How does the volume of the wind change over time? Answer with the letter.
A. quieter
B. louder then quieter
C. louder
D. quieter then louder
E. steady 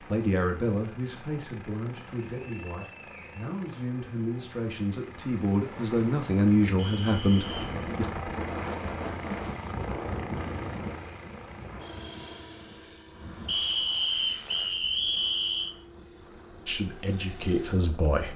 A.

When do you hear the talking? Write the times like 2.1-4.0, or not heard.
0.1-8.1, 16.6-18.3.